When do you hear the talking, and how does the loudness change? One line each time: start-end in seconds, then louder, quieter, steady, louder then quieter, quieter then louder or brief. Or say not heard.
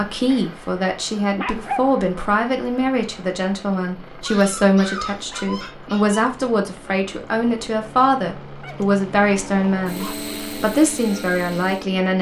0.0-12.1 steady.